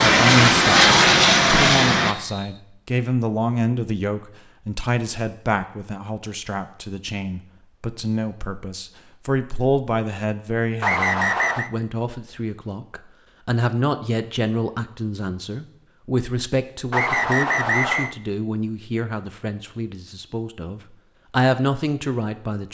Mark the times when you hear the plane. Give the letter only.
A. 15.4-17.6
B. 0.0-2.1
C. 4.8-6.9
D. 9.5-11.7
B.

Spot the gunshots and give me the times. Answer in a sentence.
The gunshots can't be heard in this clip.